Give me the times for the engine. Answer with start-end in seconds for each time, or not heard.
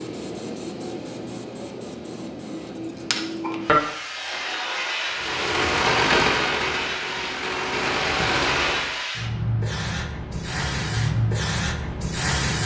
5.0-8.9.